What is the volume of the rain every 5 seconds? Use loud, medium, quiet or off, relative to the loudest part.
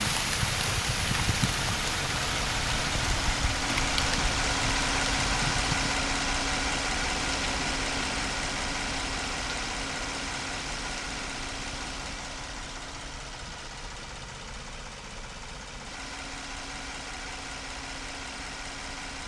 loud, medium, quiet, off.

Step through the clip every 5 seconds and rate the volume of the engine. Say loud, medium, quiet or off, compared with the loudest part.
loud, loud, medium, medium.